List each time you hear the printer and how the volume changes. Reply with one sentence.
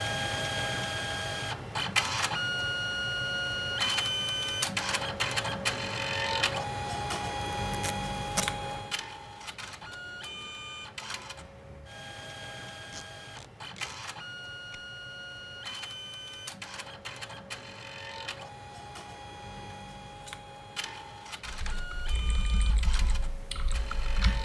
You can hear the printer from 0.0 to 24.4 s, getting quieter.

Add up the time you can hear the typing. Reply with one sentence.
The typing can be heard for 3 seconds in total.